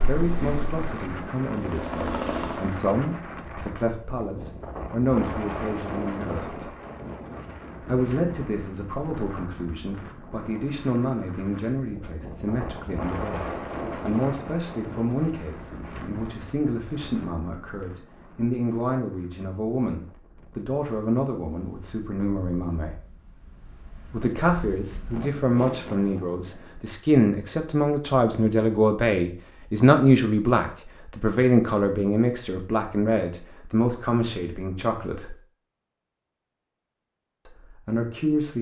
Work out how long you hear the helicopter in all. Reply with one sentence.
The helicopter can be heard for 3 seconds in total.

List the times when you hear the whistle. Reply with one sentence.
The whistle can't be heard in this clip.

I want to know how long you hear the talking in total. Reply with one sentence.
You can hear the talking for 34 seconds altogether.